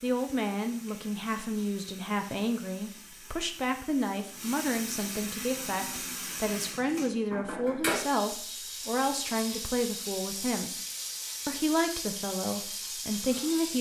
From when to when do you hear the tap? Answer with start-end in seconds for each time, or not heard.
0.0-13.7.